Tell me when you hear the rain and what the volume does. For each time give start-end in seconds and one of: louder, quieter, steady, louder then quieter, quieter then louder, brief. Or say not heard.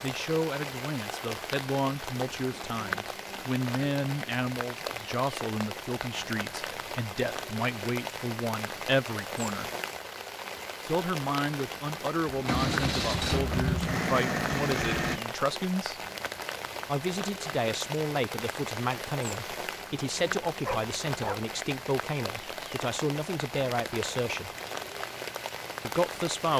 0.0-26.5 steady.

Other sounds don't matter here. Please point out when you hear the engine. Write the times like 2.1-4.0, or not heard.
12.2-15.2.